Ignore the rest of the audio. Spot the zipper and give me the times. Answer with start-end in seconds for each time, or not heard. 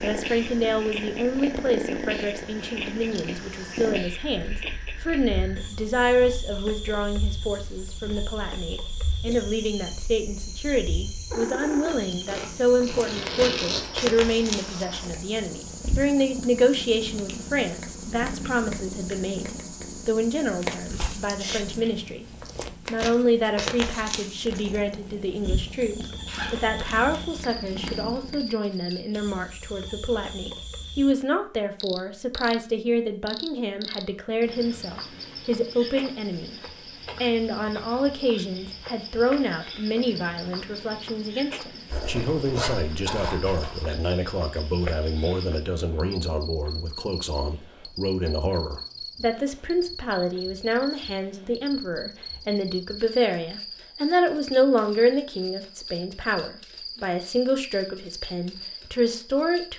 12.2-13.8, 26.2-27.8, 41.9-43.9.